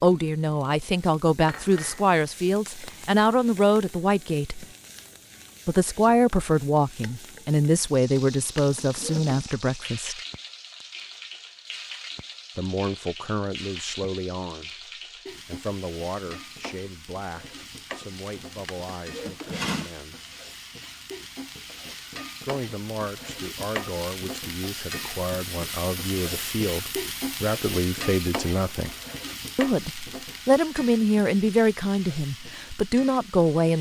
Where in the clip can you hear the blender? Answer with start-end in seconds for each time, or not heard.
not heard.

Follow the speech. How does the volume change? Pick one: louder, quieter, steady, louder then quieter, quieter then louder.
quieter then louder.